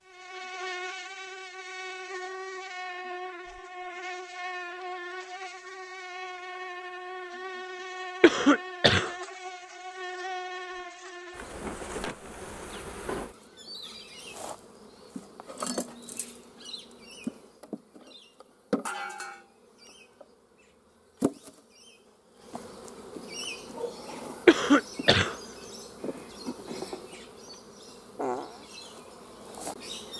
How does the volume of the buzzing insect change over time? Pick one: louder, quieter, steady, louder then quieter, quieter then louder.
steady.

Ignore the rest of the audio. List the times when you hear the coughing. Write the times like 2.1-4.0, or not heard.
8.2-9.1, 24.4-25.4.